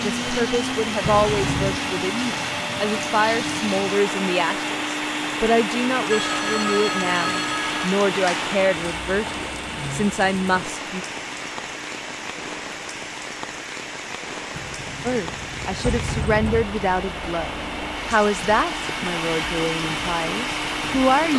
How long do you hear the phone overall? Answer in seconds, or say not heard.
2 s.